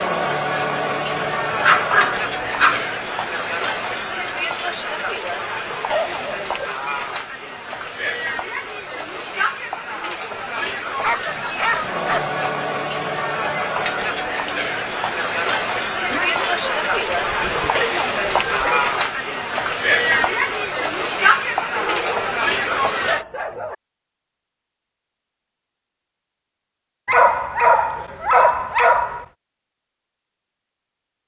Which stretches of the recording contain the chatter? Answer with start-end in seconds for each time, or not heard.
0.0-23.2.